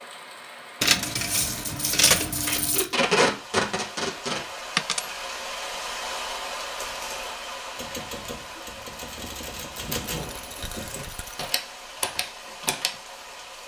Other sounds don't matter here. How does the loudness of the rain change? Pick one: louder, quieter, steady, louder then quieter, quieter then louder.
louder then quieter.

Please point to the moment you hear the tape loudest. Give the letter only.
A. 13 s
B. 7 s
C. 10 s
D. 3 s
D.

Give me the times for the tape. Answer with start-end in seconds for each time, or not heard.
2.5-4.5.